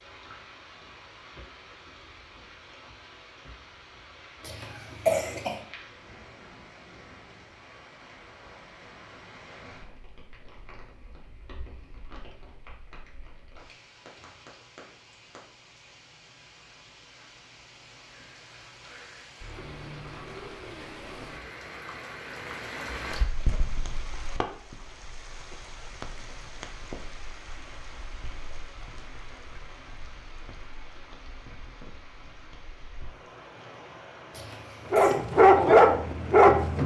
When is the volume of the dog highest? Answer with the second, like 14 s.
36 s.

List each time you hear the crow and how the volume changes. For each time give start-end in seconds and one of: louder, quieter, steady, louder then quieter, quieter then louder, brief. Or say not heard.
not heard.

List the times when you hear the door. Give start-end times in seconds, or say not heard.
not heard.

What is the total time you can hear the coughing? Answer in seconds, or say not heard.
2 s.